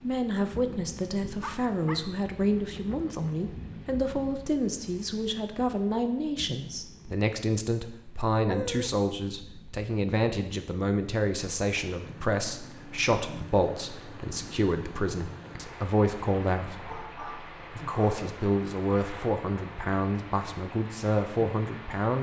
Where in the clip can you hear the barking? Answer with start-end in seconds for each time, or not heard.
1.4-3.5, 8.4-8.9, 16.8-18.4.